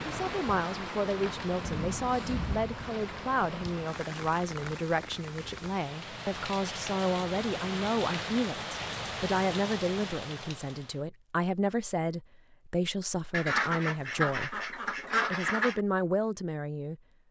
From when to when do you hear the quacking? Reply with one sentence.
The quacking can be heard from 13.3 to 15.8 s.